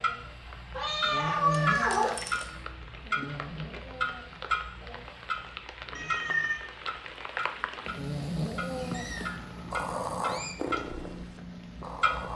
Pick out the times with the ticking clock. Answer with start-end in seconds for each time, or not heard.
0.0-12.3.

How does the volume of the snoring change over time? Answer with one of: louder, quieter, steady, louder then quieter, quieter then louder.
quieter then louder.